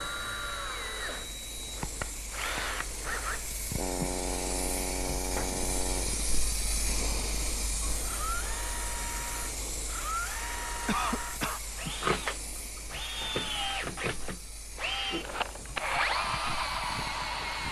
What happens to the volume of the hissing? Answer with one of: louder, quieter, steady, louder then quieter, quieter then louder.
louder then quieter.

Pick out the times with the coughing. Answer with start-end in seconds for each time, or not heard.
10.8-11.6.